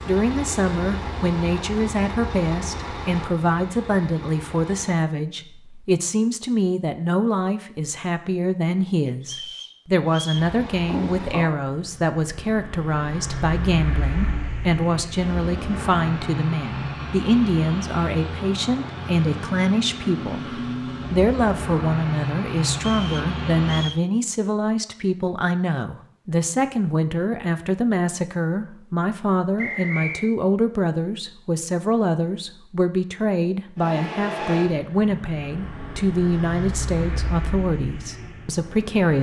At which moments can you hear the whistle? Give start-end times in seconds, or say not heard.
9.2-10.5, 22.8-24.1, 29.6-30.4.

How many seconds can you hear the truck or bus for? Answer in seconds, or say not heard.
24 s.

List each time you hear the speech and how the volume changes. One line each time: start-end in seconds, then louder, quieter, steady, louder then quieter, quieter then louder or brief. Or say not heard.
0.1-39.1 steady.